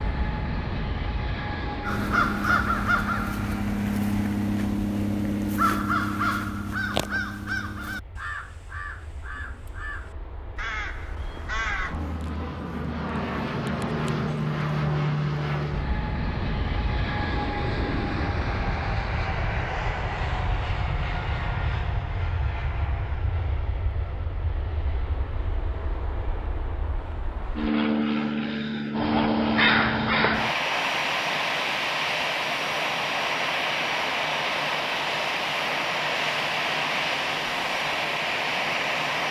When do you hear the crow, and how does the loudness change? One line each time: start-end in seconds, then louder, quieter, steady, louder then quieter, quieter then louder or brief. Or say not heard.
1.8-11.9 quieter
28.9-30.6 brief.